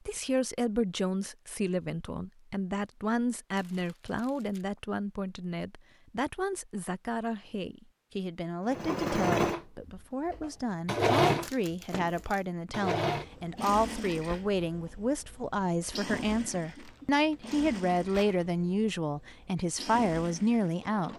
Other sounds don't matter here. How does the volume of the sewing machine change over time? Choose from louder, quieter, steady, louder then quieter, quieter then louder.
quieter.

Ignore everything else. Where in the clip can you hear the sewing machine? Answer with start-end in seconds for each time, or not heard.
8.7-21.1.